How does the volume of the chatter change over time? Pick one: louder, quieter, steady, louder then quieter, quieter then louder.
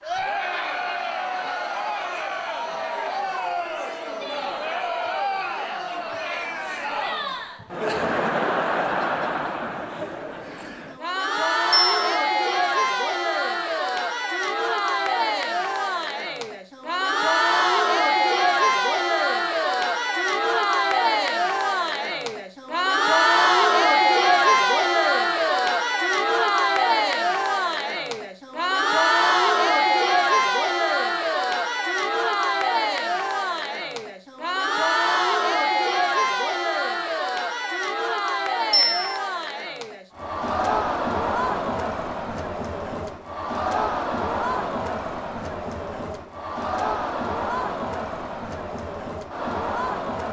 louder then quieter.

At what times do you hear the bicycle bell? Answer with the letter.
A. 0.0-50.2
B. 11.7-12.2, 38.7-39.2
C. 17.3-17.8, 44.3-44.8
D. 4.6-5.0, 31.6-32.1
B.